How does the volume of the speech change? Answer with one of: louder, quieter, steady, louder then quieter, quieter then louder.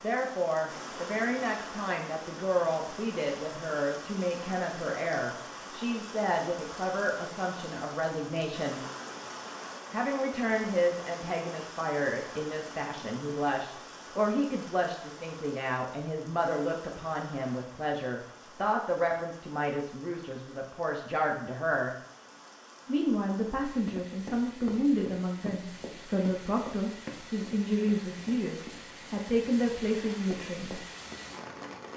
steady.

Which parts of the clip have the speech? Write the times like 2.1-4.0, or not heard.
0.0-8.8, 9.9-21.9, 22.9-30.9.